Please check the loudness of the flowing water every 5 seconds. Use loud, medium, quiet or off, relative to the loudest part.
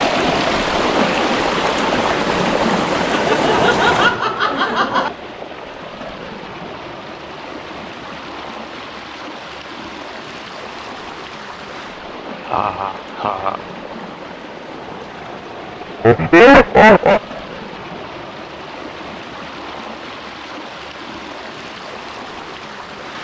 loud, quiet, quiet, quiet, quiet.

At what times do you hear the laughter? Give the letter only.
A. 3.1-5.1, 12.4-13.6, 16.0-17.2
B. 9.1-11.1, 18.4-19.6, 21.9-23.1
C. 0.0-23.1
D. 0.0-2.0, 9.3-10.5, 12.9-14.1
A.